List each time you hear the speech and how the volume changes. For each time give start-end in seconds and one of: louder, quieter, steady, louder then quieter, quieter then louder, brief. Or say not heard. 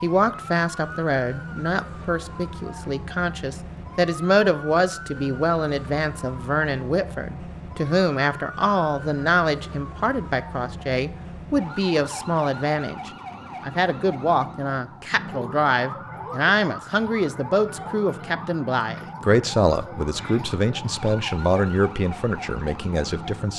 0.0-23.5 steady.